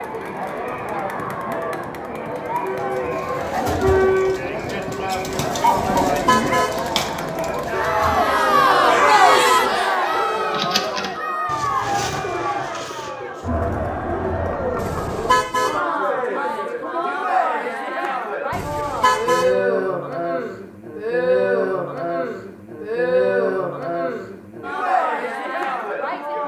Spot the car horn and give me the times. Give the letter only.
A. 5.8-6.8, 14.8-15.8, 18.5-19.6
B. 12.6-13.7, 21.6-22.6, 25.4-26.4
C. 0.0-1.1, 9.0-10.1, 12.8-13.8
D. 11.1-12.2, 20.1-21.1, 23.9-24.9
A.